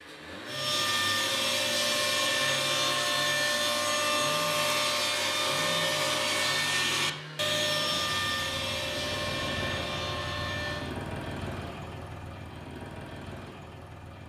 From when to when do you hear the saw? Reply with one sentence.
You can hear the saw from 0.5 to 10.9 s.